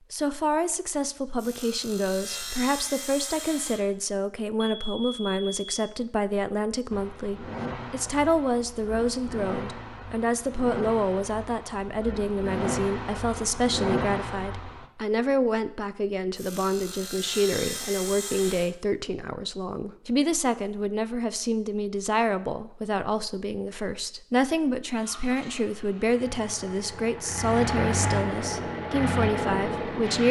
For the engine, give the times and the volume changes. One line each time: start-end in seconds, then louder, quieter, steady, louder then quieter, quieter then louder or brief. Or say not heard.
6.9-14.9 louder
24.9-30.2 louder.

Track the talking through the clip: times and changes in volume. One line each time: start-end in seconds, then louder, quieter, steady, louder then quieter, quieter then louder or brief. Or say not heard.
0.1-30.2 steady.